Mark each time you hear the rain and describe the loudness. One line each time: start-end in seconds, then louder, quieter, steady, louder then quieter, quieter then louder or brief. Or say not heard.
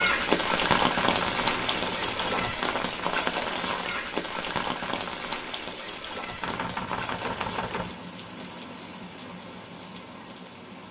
0.0-10.8 quieter.